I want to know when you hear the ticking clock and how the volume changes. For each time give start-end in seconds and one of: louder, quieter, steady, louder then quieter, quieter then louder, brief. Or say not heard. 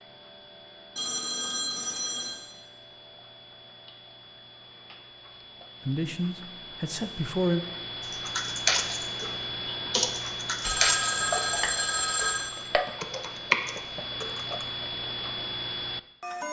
0.0-16.4 louder.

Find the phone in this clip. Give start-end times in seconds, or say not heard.
0.9-2.4, 10.6-12.5.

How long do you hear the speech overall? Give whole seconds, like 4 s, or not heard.
2 s.